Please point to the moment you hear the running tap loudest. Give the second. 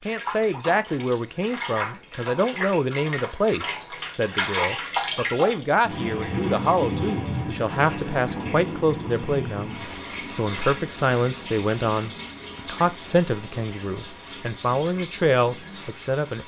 5 s.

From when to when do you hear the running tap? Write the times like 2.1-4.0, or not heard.
0.0-16.4.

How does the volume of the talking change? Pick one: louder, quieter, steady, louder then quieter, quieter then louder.
steady.